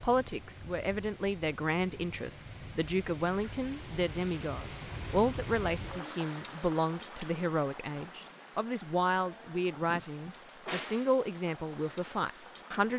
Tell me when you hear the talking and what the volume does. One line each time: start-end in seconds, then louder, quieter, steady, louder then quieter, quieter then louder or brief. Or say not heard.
0.0-12.9 steady.